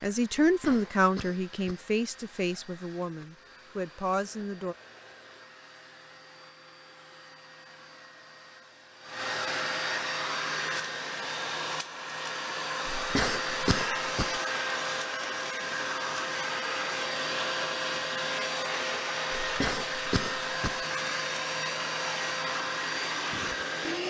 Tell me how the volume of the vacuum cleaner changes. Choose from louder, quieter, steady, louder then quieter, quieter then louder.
louder.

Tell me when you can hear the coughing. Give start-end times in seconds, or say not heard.
0.5-1.9, 12.9-14.4, 19.4-20.9.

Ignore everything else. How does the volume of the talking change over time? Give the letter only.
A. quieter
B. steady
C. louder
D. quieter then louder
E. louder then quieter
D.